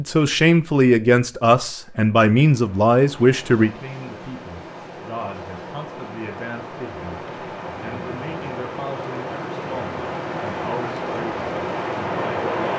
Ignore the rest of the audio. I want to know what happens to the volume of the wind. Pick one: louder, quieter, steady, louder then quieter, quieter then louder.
louder.